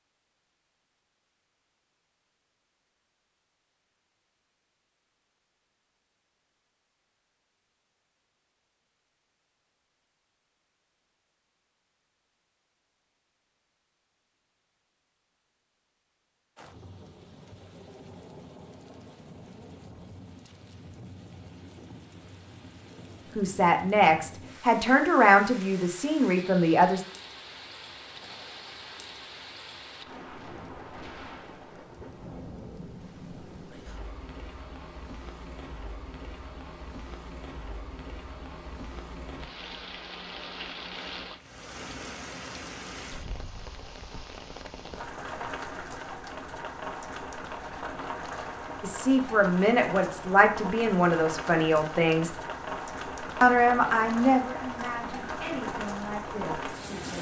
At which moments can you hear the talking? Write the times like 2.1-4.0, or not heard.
23.4-27.0, 48.8-52.3, 53.4-57.1.